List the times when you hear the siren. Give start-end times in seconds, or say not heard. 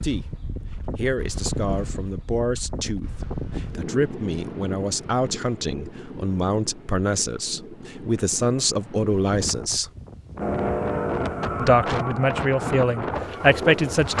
not heard.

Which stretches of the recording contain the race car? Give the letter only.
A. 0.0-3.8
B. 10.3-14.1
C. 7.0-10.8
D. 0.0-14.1
B.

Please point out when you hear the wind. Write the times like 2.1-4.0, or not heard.
0.0-14.1.